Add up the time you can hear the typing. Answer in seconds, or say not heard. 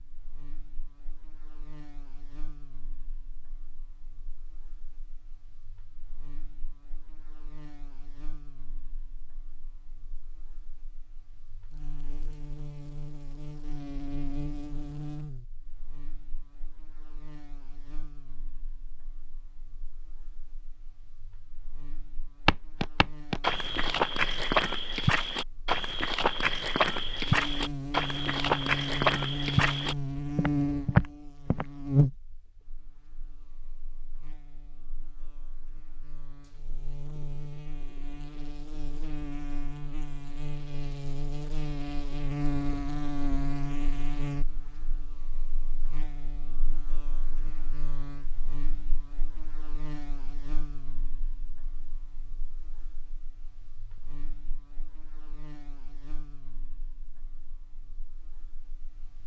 not heard.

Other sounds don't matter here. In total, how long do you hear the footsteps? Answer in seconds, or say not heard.
9 s.